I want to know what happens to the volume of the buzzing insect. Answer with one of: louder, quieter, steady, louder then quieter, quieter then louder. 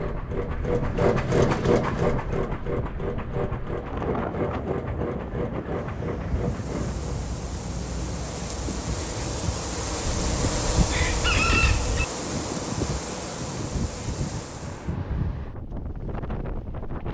louder then quieter.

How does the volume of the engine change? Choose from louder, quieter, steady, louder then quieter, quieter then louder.
quieter.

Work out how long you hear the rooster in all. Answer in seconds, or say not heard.
2 s.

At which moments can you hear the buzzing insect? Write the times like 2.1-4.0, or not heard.
6.3-14.9.